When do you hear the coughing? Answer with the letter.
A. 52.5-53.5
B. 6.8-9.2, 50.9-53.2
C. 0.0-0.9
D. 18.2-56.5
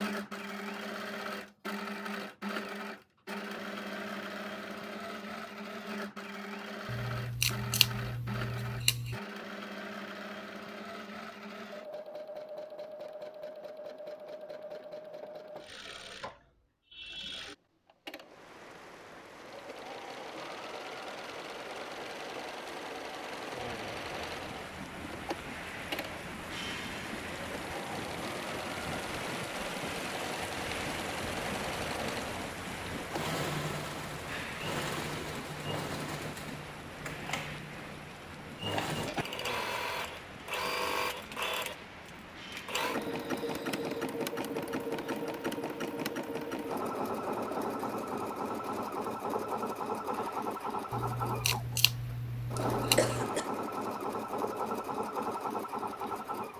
A.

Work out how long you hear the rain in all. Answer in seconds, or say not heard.
38 s.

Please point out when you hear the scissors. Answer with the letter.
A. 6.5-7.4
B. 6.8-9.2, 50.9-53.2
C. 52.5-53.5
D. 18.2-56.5
B.